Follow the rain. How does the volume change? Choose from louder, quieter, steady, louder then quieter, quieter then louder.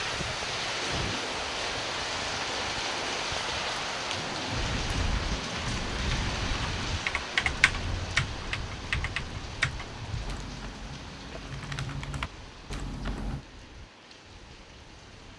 quieter.